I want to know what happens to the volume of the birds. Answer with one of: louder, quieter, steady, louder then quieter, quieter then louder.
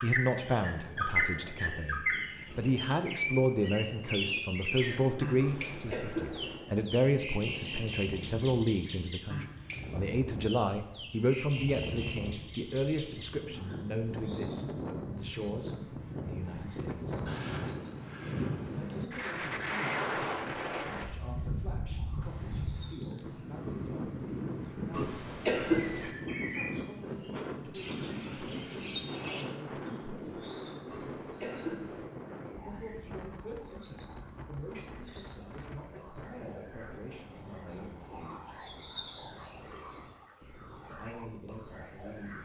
quieter then louder.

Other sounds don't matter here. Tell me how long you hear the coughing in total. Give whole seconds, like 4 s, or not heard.
4 s.